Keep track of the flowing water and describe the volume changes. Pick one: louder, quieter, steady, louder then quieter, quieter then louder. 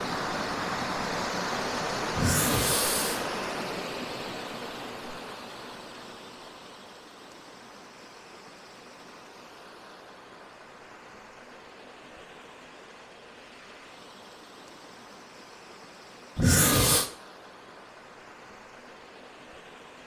quieter.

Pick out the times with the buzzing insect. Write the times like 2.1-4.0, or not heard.
not heard.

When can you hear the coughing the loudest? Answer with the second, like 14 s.
17 s.